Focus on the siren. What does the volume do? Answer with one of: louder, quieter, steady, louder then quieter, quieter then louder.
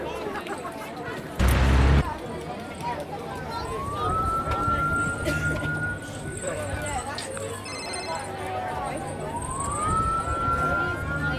quieter then louder.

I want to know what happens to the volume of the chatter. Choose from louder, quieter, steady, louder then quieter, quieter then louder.
steady.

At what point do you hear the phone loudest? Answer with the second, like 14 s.
2 s.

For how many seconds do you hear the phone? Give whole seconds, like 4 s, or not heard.
3 s.